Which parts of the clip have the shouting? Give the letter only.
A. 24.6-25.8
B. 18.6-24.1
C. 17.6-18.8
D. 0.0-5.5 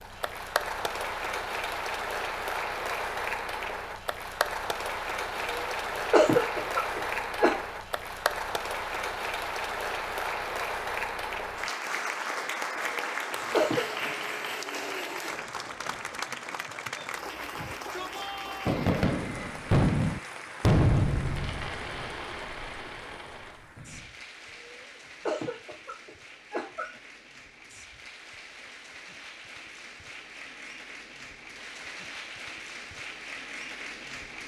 C.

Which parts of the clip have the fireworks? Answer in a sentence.
You can hear the fireworks from 18.6 to 24.1 s.